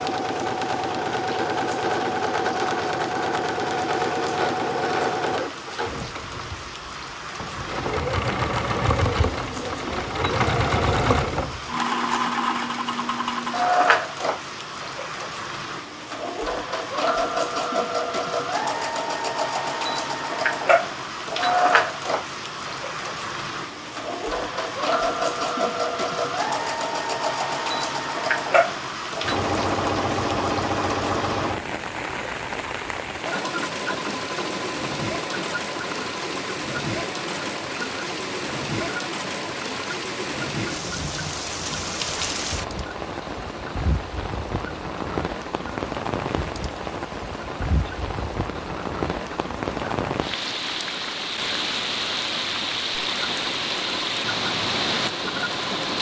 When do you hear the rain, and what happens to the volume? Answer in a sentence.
You can hear the rain from 0.0 to 55.9 s, getting louder.